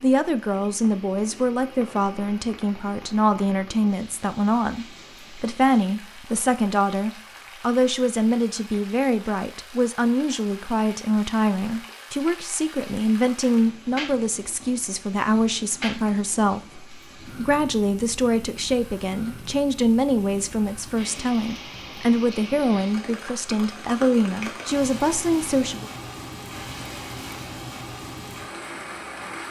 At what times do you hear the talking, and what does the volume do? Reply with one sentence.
The talking can be heard from 0.0 to 25.9 s, at a steady volume.